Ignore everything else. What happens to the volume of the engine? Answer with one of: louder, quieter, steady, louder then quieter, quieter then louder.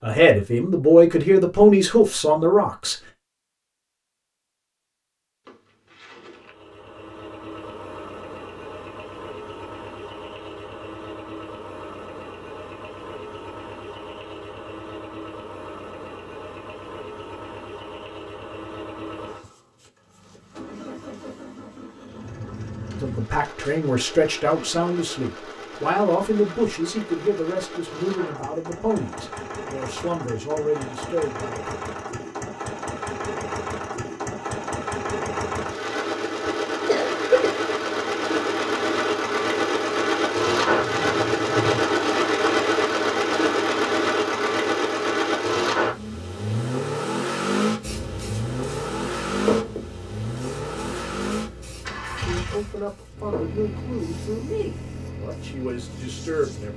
louder then quieter.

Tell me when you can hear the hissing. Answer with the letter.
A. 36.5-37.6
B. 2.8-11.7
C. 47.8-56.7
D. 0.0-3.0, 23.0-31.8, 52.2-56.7
C.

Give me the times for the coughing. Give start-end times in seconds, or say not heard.
36.5-37.6.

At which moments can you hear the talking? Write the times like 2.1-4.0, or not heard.
0.0-3.0, 23.0-31.8, 52.2-56.7.